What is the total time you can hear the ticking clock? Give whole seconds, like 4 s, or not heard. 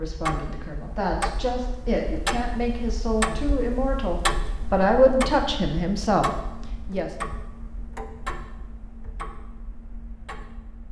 11 s.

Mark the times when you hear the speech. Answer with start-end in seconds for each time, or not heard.
0.0-7.1.